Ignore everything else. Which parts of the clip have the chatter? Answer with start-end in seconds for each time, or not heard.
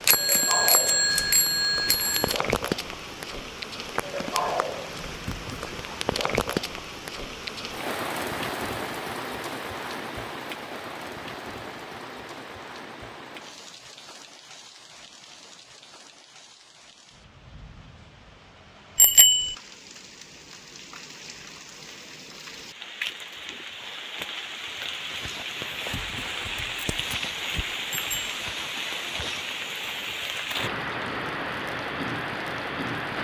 not heard.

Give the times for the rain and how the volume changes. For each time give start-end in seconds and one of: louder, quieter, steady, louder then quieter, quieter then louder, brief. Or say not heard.
0.0-33.1 quieter then louder.